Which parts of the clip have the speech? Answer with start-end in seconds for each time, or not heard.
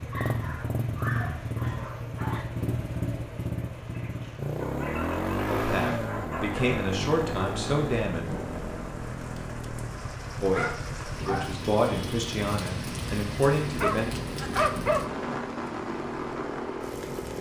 5.5-8.2, 10.4-14.1.